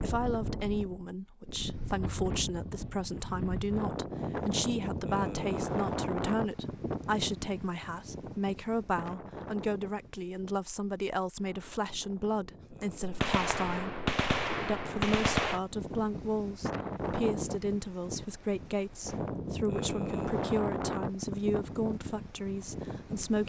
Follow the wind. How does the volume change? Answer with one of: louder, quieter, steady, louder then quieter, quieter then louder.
quieter then louder.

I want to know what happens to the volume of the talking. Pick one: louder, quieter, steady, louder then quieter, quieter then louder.
steady.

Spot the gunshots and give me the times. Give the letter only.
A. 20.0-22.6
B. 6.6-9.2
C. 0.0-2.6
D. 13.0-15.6
D.